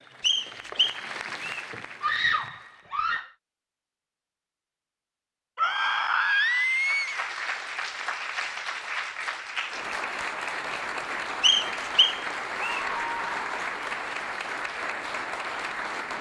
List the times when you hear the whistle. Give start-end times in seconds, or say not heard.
0.2-1.6, 11.4-12.8.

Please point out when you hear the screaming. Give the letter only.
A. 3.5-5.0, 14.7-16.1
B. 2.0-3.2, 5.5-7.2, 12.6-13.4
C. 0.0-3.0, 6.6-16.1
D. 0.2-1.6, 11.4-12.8
B.